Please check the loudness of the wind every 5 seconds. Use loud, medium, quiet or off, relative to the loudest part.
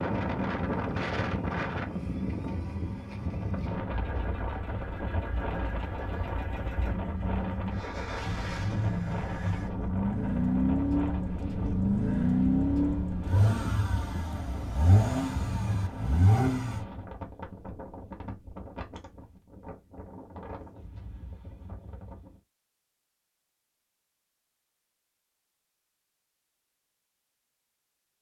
loud, medium, medium, medium, quiet, off.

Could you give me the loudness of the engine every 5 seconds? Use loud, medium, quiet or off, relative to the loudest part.
quiet, medium, loud, loud, off, off.